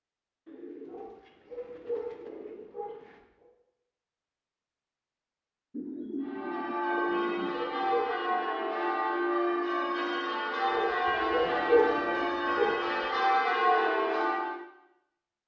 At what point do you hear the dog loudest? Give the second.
12 s.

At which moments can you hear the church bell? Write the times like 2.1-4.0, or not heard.
6.2-14.7.